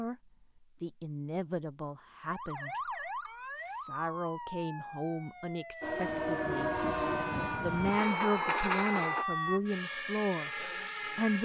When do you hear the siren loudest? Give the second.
9 s.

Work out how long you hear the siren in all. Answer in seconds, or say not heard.
9 s.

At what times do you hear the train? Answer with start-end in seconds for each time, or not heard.
5.8-9.2.